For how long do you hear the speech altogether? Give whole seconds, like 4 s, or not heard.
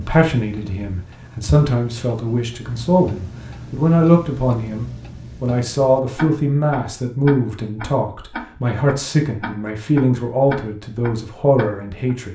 12 s.